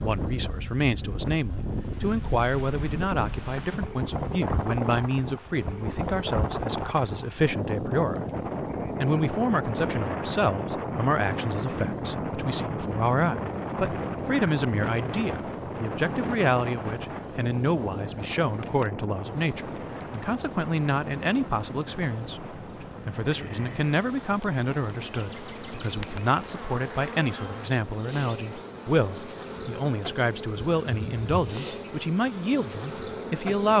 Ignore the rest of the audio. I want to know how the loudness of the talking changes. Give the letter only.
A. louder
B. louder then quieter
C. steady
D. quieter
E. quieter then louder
C.